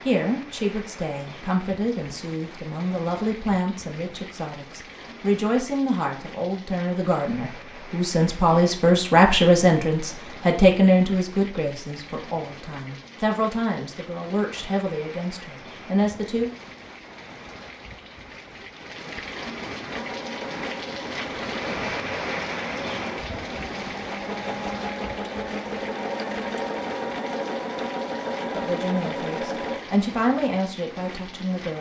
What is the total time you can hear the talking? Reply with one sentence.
You can hear the talking for 20 seconds altogether.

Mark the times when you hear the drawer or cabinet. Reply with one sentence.
The drawer or cabinet can't be heard in this clip.